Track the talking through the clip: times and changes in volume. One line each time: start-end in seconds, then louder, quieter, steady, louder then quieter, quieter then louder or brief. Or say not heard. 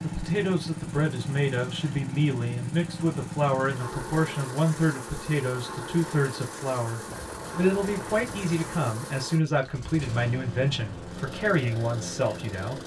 0.0-12.8 steady.